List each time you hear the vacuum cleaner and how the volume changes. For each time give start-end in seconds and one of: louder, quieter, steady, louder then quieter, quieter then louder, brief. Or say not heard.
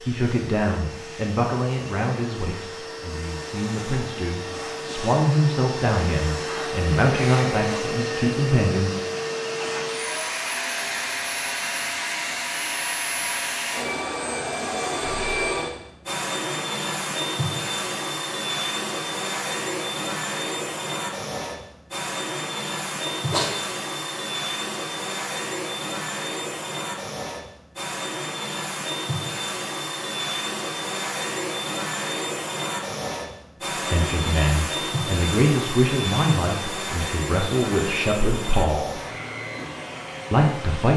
0.0-40.9 steady.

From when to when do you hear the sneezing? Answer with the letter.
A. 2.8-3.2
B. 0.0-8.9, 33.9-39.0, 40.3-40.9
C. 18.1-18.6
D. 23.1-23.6
D.